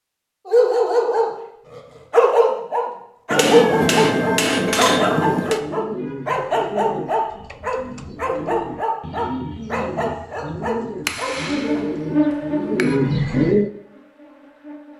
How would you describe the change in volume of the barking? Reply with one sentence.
The volume of the barking goes down.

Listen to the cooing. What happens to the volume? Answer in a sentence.
The loudness of the cooing goes up.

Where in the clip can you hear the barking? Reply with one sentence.
The barking can be heard from 0.5 to 11.8 s.